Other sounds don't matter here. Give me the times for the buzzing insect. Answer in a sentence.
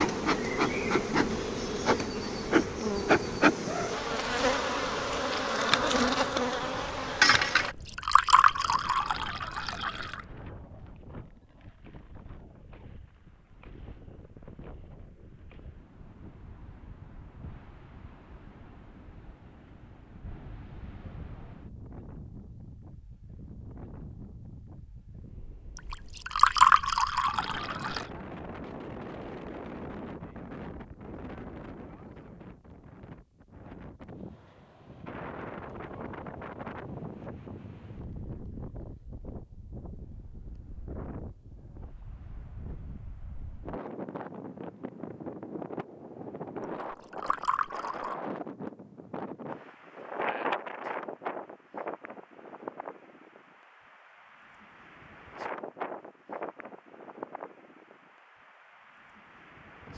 You can hear the buzzing insect from 0.0 to 7.8 s.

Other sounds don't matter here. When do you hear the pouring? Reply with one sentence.
The pouring can be heard from 7.6 to 10.2 s, from 25.9 to 28.1 s and from 46.8 to 48.1 s.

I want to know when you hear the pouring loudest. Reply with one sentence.
The loudest moment of the pouring is at 27 seconds.